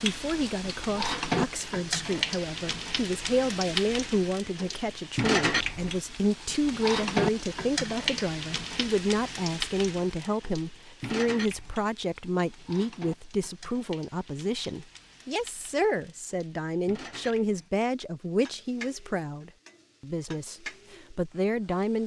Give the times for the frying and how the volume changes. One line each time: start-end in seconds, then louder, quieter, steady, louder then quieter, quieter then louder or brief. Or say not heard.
0.0-22.0 quieter.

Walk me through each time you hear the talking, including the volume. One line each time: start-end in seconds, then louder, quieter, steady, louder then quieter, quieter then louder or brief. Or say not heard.
0.0-22.0 steady.